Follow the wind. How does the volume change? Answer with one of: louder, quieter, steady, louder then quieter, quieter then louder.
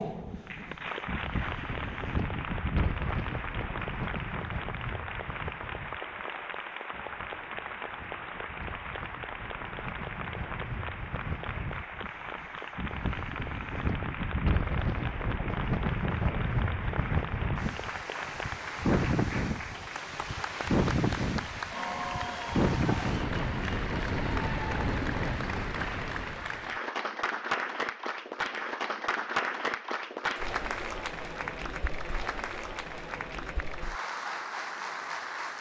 quieter then louder.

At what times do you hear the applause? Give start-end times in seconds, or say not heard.
0.0-35.5.